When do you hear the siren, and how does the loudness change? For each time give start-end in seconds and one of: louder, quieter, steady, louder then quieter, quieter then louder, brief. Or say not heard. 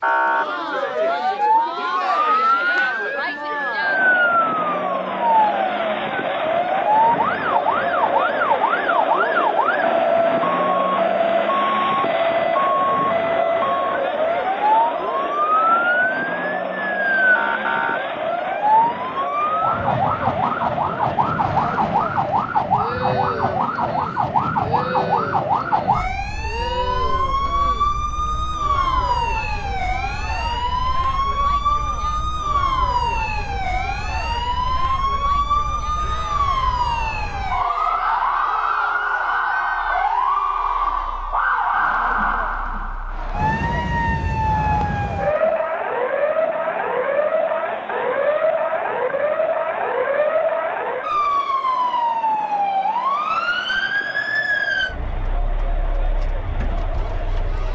0.0-57.7 steady.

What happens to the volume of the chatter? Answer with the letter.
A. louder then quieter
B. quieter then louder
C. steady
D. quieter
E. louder
D.